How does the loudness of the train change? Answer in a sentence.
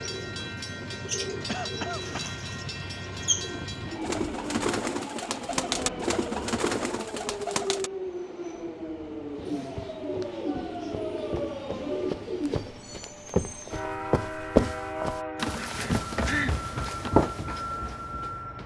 The volume of the train stays about the same.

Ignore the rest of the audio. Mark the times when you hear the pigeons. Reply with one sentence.
The pigeons can be heard from 0.0 to 7.9 s and from 9.2 to 12.8 s.